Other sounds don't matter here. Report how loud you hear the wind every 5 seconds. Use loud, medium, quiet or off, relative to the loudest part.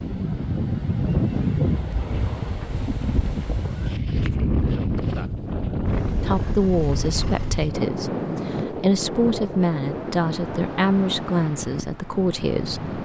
loud, loud, medium.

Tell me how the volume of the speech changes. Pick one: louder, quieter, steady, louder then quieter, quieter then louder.
steady.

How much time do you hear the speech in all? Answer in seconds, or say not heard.
7 s.